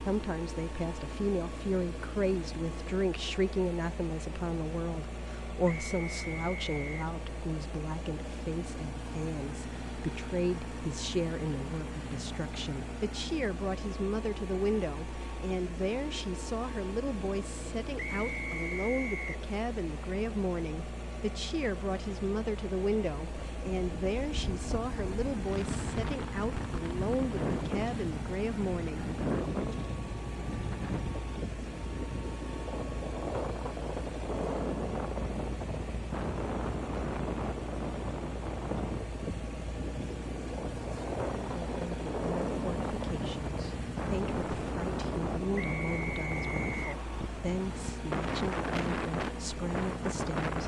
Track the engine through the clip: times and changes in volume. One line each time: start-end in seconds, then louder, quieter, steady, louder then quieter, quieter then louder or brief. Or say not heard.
0.0-50.6 steady.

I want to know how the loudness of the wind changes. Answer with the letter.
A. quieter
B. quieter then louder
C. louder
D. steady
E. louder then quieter
D.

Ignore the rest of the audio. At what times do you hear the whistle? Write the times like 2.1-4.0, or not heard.
5.7-6.8, 17.9-19.4, 45.5-46.9.